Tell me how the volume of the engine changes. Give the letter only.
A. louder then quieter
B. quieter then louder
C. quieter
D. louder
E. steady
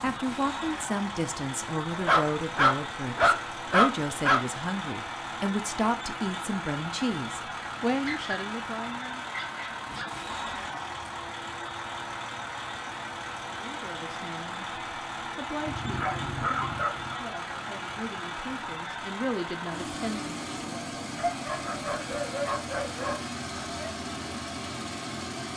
E.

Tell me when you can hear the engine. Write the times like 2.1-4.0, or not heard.
0.0-25.5.